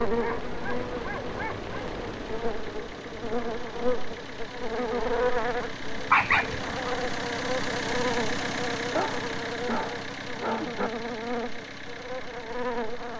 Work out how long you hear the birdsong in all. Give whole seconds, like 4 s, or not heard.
not heard.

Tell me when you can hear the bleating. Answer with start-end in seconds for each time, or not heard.
not heard.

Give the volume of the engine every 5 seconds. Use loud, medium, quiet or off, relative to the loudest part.
medium, loud, medium.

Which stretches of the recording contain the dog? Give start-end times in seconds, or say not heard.
0.1-1.8, 6.1-6.8, 8.9-10.9.